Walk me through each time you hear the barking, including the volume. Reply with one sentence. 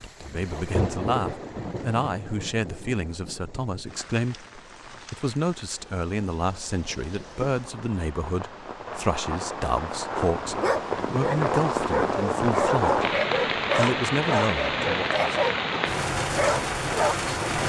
You can hear the barking from 10.6 to 17.1 s, at a steady volume.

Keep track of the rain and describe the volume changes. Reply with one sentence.
The volume of the rain goes down, then up.